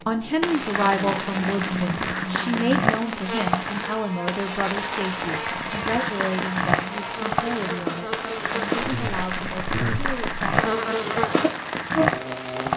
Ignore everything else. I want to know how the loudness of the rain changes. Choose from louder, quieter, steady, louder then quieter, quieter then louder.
steady.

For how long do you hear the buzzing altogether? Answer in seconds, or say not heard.
13 s.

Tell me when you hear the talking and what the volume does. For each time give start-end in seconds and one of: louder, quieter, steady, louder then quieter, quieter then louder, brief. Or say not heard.
0.1-10.7 quieter.